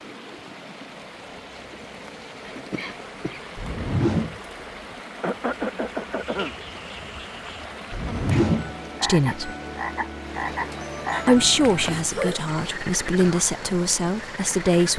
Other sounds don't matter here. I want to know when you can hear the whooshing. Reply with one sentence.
You can hear the whooshing from 3.5 to 4.4 s and from 7.9 to 8.8 s.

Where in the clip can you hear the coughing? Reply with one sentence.
You can hear the coughing from 2.5 to 3.4 s, from 5.2 to 6.5 s and from 11.1 to 12.5 s.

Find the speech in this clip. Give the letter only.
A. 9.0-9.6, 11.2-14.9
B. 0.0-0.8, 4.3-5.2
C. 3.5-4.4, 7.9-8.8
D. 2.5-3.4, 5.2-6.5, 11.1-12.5
A.